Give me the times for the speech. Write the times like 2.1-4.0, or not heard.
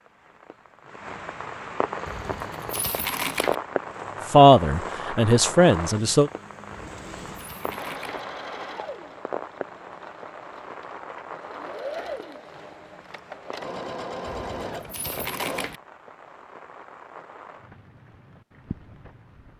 4.3-6.3.